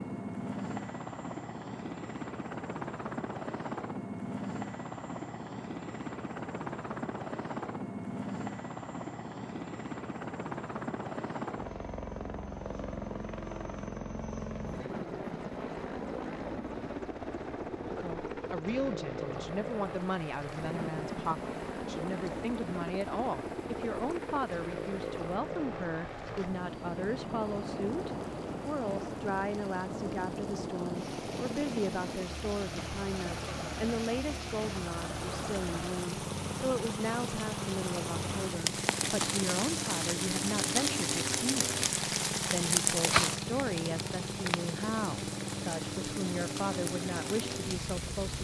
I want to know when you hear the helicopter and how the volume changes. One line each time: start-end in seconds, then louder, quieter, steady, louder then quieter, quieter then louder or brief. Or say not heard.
0.0-48.4 steady.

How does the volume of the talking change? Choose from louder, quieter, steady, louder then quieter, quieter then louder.
steady.